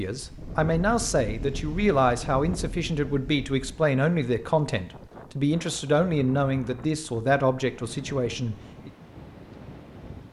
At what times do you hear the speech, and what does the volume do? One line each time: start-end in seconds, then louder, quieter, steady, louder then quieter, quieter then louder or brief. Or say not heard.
0.0-8.9 steady.